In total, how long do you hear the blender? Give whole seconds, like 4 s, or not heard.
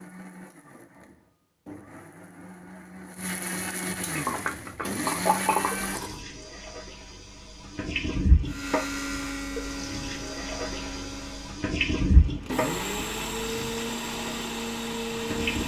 13 s.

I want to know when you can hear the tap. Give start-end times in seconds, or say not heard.
4.2-15.6.